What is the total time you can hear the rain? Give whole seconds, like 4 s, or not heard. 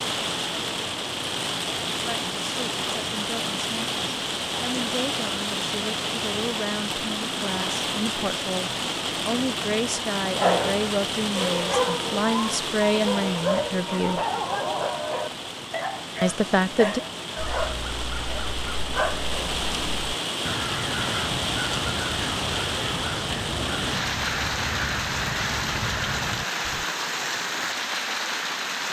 29 s.